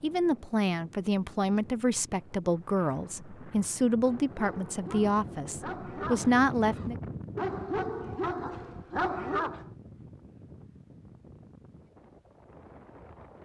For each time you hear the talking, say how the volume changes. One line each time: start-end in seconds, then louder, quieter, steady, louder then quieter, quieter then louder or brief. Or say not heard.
0.0-7.0 steady.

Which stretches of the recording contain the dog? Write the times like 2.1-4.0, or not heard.
4.0-9.7.